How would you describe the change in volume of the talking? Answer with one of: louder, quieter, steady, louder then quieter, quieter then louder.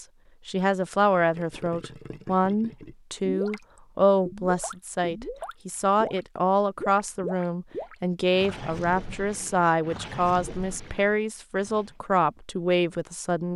steady.